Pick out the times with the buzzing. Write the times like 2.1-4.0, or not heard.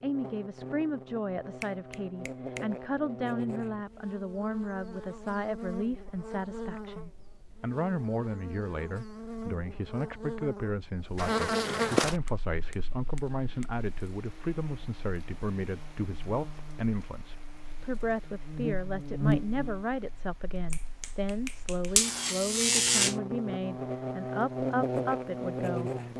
0.0-26.1.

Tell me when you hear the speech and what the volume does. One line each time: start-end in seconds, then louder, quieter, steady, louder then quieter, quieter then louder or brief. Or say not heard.
0.0-25.9 steady.